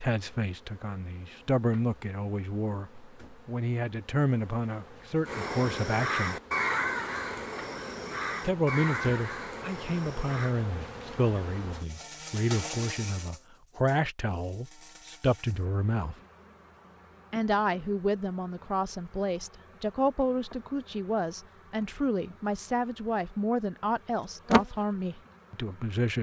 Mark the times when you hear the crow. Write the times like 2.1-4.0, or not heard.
5.2-10.6.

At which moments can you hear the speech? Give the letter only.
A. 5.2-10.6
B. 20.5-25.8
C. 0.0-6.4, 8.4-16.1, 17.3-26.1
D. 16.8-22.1
C.